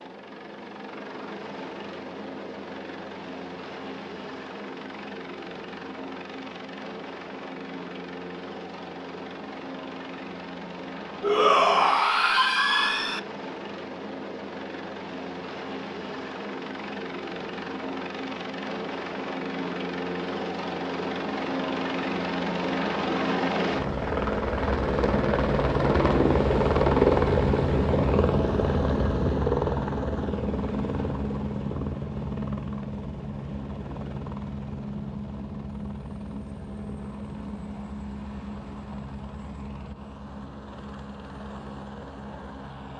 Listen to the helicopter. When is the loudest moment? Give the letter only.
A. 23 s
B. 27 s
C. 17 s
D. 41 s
B.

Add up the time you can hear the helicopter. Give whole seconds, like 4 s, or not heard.
43 s.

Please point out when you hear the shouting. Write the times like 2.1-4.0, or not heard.
11.2-13.2.